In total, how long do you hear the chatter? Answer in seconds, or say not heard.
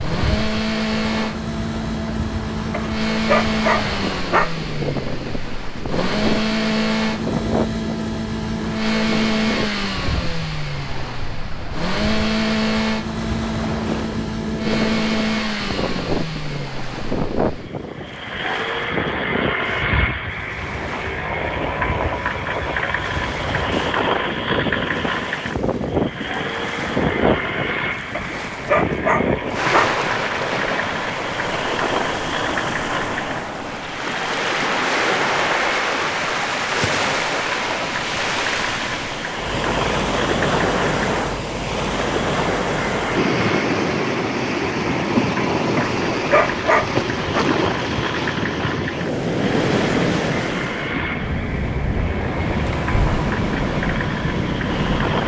not heard.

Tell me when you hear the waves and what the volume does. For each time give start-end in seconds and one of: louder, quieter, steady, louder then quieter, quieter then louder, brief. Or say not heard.
0.0-55.2 louder.